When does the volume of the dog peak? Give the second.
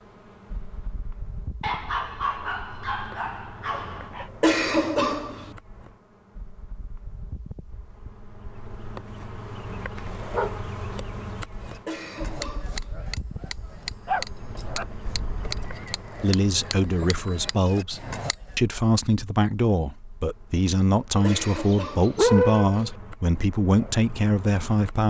22 s.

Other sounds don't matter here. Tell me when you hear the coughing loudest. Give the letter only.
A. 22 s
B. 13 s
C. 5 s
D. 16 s
C.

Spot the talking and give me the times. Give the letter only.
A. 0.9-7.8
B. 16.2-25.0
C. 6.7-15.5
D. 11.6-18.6
B.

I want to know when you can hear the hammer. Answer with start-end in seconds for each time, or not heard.
11.6-18.6.